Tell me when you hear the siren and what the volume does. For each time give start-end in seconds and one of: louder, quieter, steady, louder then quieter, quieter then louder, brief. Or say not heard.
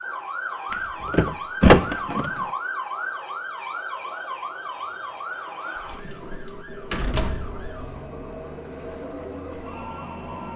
0.0-10.2 quieter.